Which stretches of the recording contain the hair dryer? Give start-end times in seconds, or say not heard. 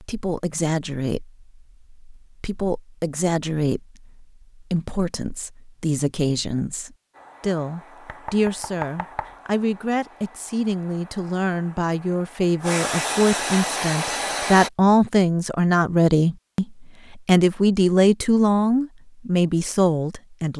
7.1-14.7.